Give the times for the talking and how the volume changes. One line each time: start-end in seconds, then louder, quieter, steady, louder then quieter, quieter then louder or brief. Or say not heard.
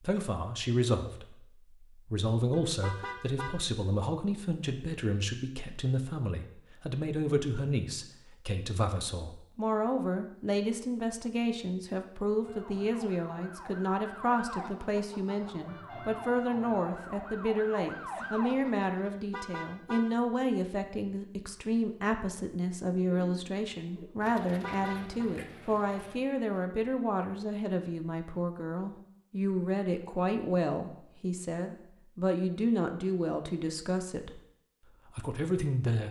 0.0-34.4 steady
35.1-36.0 brief.